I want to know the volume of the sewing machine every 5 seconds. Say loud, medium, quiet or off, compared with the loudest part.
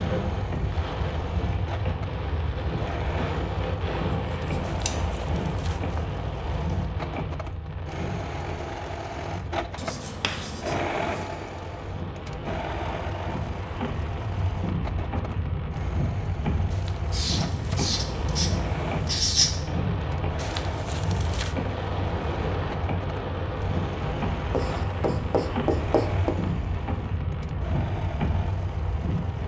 medium, loud, loud, medium, medium, medium.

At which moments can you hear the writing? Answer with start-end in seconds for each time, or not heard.
4.1-5.2, 9.8-11.2, 17.1-19.6, 24.5-26.3.